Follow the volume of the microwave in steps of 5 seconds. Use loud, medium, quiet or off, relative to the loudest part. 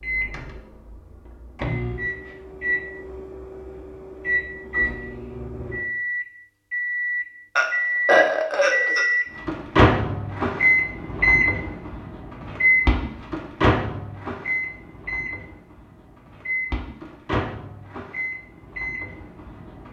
medium, loud, loud, medium.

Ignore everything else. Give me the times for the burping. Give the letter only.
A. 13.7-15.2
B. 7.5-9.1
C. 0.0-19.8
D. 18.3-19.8
B.